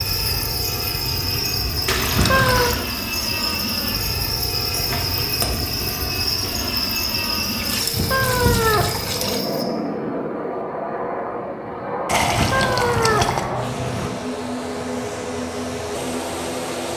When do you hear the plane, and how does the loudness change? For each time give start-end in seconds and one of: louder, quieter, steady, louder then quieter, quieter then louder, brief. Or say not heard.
0.0-16.9 steady.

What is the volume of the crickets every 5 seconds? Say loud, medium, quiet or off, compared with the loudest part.
loud, loud, off, off.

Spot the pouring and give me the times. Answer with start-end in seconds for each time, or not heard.
1.9-2.8, 7.5-9.4, 12.1-13.5.